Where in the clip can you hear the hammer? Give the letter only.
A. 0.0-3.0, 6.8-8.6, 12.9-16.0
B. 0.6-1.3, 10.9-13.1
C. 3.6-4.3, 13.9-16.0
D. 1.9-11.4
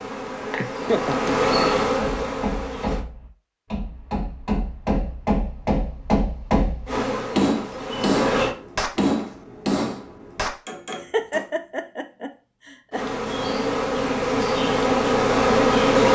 D.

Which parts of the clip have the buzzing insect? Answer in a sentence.
You can hear the buzzing insect from 0.0 to 3.0 s, from 6.8 to 8.6 s and from 12.9 to 16.0 s.